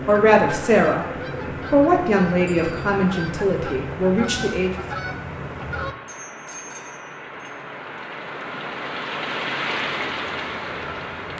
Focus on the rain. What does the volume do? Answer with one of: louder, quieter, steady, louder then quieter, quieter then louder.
louder.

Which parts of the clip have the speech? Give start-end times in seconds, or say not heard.
0.1-1.1, 1.7-4.8.